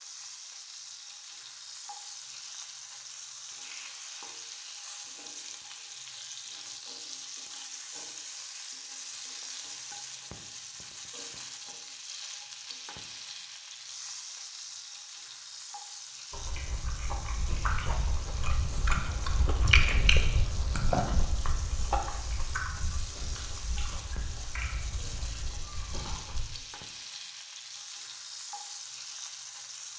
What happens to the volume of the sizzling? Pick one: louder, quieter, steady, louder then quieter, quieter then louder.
steady.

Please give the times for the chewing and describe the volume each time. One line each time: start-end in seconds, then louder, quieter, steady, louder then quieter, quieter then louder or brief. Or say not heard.
16.3-26.4 louder then quieter.